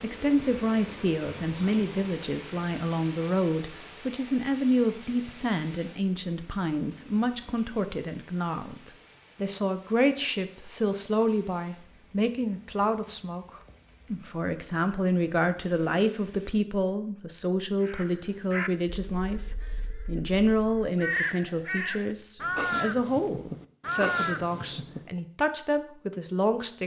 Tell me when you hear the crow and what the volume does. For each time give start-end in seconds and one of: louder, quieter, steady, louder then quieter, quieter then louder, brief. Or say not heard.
17.8-25.1 quieter then louder.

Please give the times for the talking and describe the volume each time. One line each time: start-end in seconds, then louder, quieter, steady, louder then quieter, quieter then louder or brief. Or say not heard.
0.0-26.8 steady.